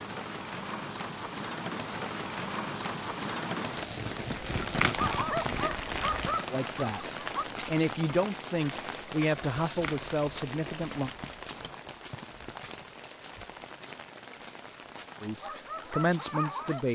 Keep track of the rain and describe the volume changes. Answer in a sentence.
The volume of the rain goes down.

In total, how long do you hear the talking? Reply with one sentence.
You can hear the talking for 6 seconds altogether.